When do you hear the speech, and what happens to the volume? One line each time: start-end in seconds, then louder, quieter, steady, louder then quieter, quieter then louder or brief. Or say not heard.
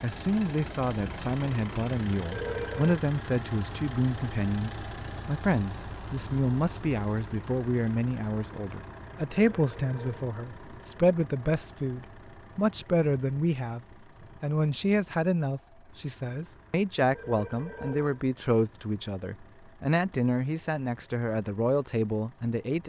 0.0-22.8 steady.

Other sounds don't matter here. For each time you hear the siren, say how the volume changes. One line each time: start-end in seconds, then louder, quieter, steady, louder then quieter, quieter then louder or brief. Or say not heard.
not heard.